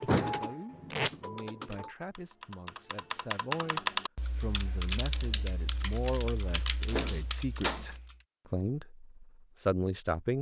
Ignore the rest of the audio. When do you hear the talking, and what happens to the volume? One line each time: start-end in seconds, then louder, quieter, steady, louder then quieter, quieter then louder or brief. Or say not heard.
0.2-10.3 louder.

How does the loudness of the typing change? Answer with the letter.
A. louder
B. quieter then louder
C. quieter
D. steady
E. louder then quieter
E.